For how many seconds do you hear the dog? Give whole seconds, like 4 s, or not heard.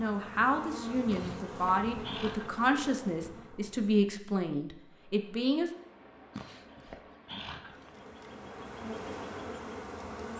3 s.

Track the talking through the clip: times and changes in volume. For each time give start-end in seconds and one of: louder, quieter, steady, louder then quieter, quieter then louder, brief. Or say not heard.
0.0-5.7 steady.